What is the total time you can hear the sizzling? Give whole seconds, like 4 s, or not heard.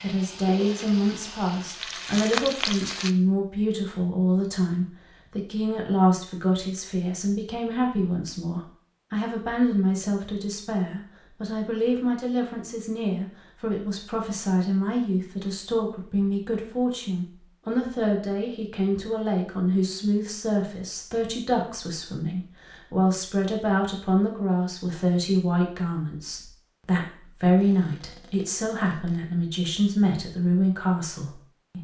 3 s.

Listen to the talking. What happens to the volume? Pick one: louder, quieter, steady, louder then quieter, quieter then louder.
steady.